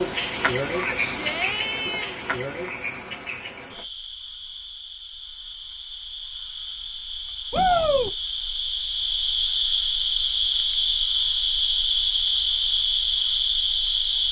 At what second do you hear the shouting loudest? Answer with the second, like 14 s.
8 s.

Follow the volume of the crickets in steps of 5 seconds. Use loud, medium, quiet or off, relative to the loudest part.
loud, medium, loud.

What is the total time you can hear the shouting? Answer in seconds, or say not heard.
2 s.